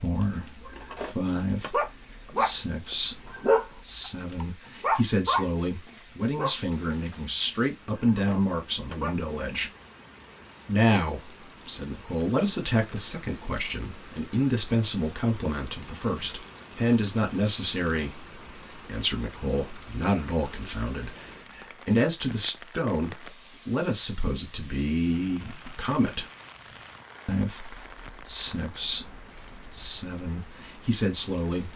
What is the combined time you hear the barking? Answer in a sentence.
The barking can be heard for 8 seconds in total.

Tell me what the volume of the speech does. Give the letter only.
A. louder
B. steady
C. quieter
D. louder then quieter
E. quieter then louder
B.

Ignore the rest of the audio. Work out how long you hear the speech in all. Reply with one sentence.
You can hear the speech for 30 seconds altogether.